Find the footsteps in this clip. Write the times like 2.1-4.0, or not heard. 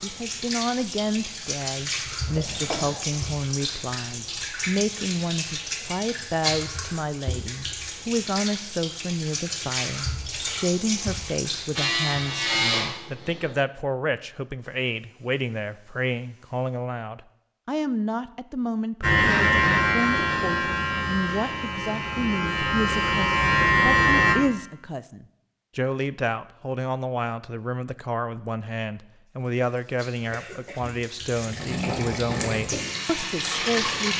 not heard.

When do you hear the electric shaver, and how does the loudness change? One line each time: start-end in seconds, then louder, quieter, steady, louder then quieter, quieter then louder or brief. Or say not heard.
11.8-13.6 brief
19.0-24.4 quieter then louder.